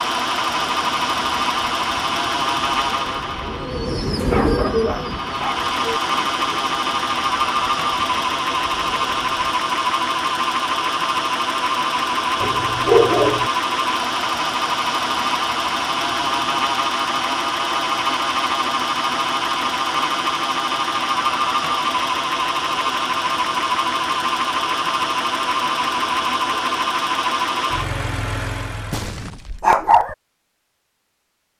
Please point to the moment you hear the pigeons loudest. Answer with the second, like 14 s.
4 s.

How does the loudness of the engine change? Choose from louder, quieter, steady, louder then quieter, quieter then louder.
steady.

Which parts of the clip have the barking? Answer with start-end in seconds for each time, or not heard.
4.3-5.7, 12.4-13.5, 28.9-30.1.